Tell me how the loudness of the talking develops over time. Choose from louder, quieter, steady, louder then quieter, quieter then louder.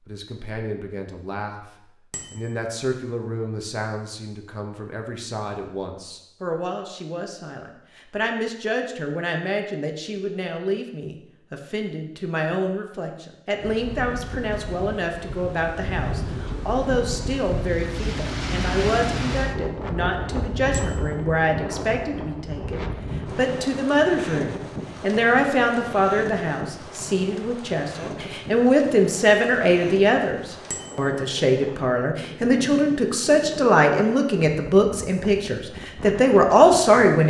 louder.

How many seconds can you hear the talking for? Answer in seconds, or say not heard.
37 s.